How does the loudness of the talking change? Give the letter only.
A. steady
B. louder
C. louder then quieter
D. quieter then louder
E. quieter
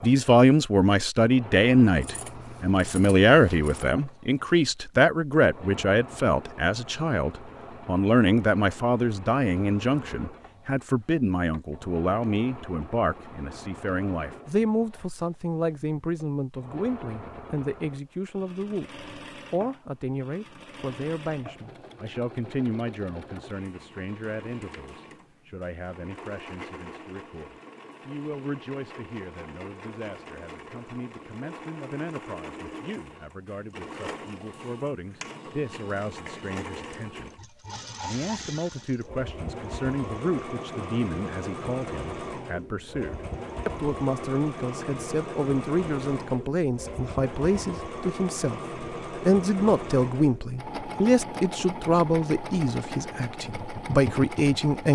D.